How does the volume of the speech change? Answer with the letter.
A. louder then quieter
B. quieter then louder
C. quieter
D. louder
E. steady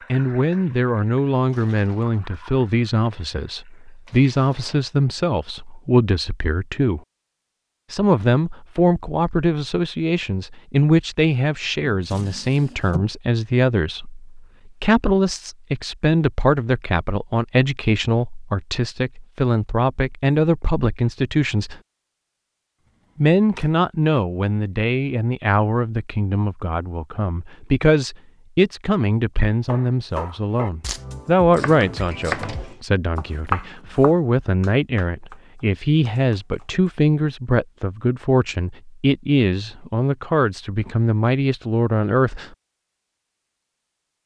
E.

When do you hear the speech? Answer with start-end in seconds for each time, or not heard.
0.1-7.0, 7.9-21.8, 23.1-42.5.